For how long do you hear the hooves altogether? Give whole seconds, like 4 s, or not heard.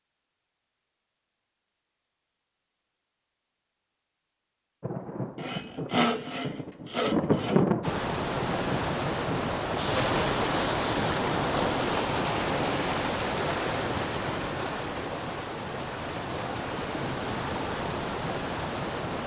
not heard.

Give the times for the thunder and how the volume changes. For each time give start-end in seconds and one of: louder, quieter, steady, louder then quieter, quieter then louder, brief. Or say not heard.
4.8-9.6 louder then quieter.